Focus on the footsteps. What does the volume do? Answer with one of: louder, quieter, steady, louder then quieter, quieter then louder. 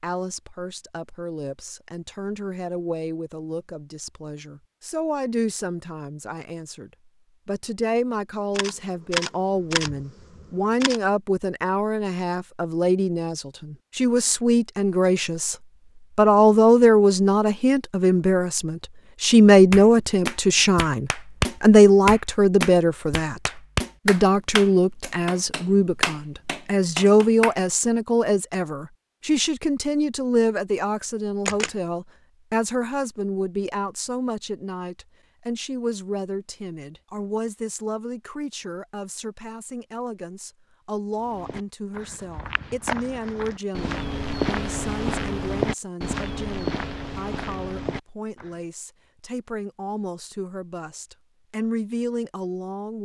louder then quieter.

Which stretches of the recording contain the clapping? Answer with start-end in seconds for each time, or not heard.
19.7-27.6.